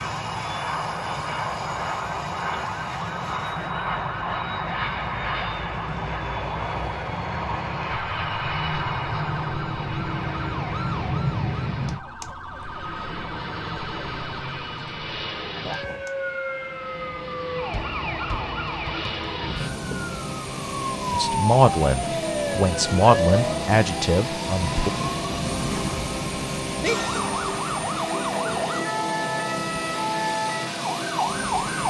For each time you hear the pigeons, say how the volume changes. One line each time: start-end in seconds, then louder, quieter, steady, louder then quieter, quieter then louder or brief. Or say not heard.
not heard.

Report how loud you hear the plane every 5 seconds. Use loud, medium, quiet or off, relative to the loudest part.
loud, loud, loud, medium, loud, loud, loud.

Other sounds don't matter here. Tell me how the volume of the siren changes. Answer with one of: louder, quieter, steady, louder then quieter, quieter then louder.
louder.